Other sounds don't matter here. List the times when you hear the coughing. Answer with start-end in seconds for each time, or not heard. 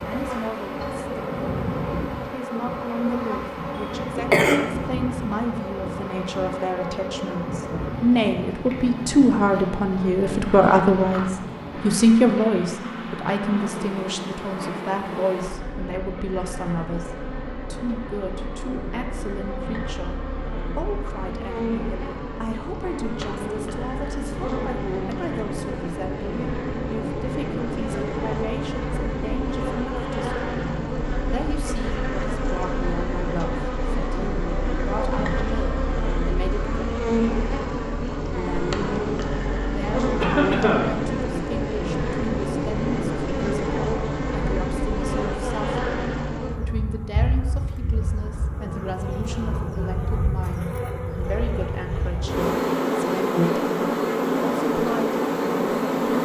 4.0-4.6, 40.2-40.9.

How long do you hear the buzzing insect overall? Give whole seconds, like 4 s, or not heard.
56 s.